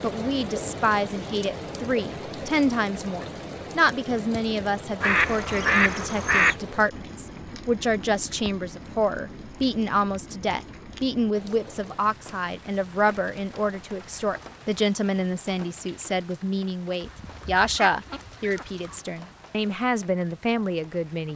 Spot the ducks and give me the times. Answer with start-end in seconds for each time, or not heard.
5.0-6.5, 17.0-19.0.